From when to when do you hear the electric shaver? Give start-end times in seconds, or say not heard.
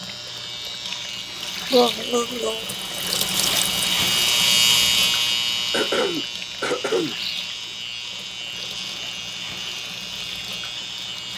0.0-11.3.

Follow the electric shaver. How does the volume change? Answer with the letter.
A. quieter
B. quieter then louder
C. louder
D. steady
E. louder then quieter
E.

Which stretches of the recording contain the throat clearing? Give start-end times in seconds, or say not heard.
1.7-2.6, 5.7-7.2.